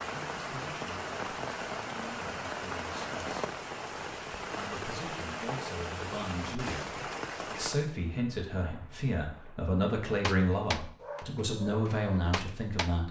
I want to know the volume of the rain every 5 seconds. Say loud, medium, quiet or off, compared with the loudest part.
loud, loud, off.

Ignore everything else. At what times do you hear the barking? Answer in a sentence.
The barking can be heard from 10.2 to 12.9 s.